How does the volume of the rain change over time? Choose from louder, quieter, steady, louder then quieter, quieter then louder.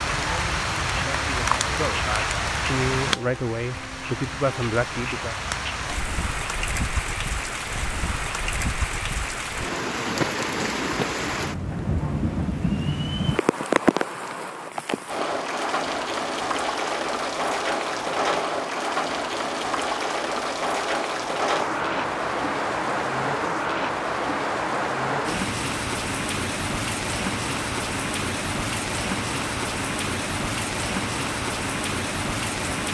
steady.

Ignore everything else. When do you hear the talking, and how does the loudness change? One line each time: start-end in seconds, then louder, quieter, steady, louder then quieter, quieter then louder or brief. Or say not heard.
0.0-5.3 louder.